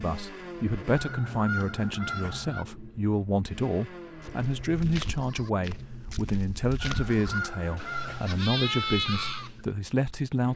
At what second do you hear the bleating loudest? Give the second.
9 s.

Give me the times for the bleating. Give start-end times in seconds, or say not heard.
4.2-9.7.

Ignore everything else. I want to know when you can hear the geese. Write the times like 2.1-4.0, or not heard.
0.9-2.6, 6.8-8.3.